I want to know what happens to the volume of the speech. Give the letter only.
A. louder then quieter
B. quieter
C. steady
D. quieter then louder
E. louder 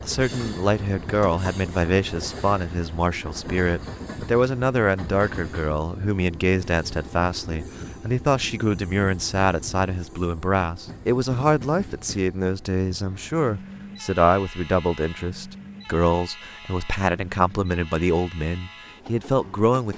C.